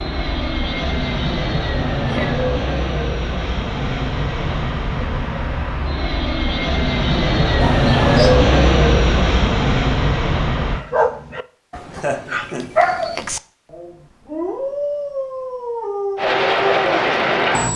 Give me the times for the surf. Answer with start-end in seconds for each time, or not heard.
not heard.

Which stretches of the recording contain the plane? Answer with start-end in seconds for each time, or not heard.
0.0-10.8, 16.1-17.7.